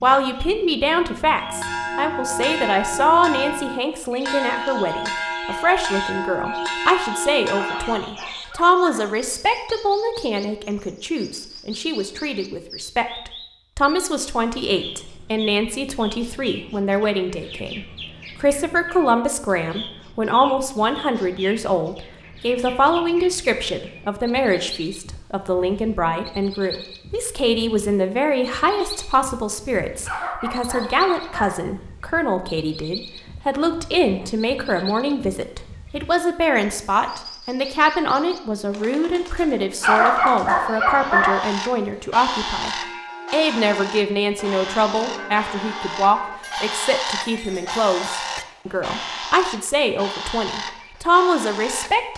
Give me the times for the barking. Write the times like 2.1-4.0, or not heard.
7.8-9.2, 30.1-31.6, 39.8-41.5.